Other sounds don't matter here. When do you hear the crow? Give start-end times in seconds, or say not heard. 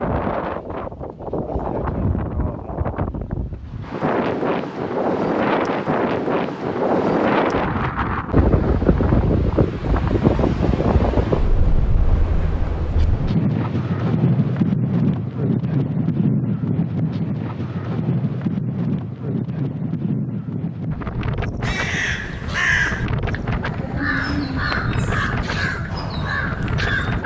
21.6-27.2.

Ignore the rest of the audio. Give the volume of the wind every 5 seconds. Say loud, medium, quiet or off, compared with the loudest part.
medium, loud, loud, loud, medium, medium.